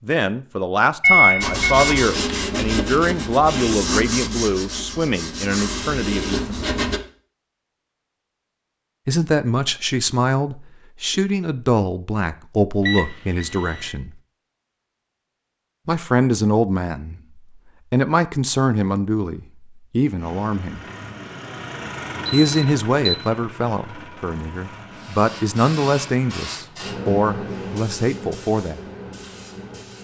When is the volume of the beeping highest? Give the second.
1 s.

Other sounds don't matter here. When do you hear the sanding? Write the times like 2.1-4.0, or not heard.
1.4-7.0.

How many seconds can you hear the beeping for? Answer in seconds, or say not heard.
3 s.